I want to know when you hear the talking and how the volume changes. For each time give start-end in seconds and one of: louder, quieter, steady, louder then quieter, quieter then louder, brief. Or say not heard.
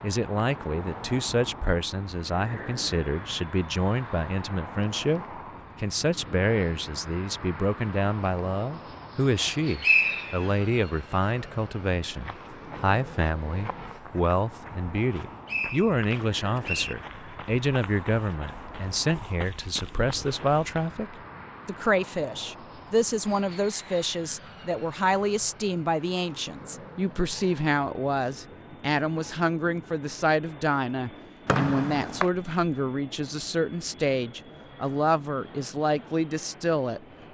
0.0-37.0 steady.